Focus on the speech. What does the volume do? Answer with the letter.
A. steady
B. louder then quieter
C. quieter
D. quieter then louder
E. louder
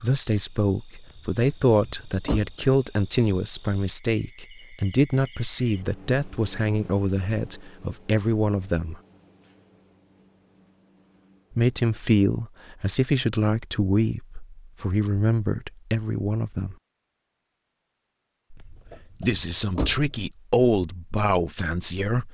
A.